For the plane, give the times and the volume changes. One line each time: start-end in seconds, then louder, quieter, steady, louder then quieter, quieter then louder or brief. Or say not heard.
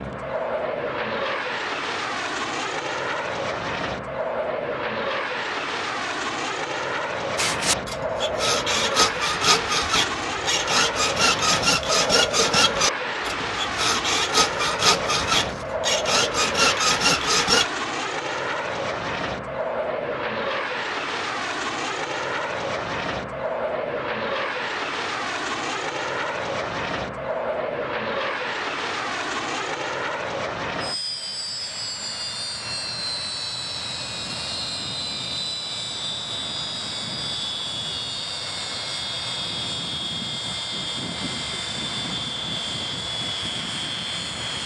0.0-44.6 steady.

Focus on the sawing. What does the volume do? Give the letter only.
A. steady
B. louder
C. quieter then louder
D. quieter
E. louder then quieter
A.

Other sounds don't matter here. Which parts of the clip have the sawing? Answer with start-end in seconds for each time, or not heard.
7.3-17.6.